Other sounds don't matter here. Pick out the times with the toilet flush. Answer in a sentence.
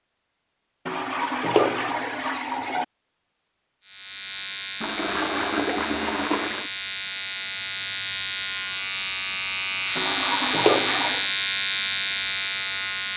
The toilet flush can be heard from 0.8 to 2.9 s, from 4.8 to 6.7 s and from 9.9 to 11.3 s.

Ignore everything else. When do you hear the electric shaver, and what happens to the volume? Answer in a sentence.
You can hear the electric shaver from 3.9 to 13.1 s, getting louder.